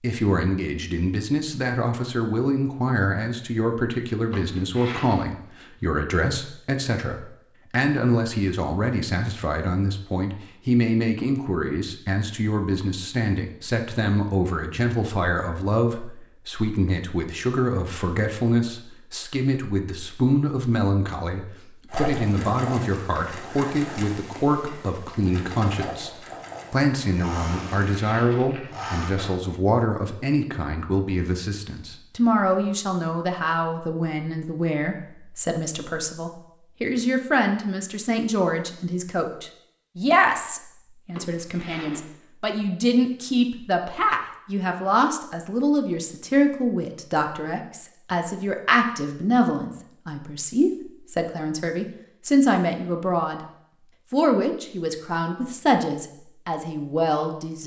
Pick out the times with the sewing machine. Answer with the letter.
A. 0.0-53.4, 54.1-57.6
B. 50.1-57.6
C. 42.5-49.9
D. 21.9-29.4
D.